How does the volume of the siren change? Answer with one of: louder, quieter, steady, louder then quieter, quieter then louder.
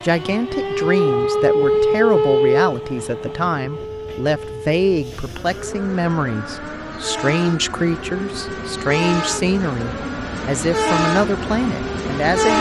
quieter.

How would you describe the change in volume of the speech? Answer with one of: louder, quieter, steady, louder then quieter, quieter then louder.
steady.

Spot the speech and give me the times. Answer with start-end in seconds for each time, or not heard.
0.0-12.5.